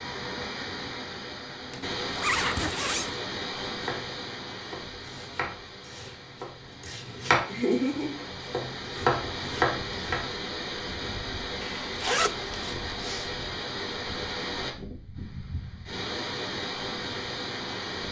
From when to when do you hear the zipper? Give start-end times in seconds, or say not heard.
1.7-3.2, 11.6-13.3.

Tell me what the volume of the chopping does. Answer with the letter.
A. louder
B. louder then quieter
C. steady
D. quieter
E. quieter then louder
A.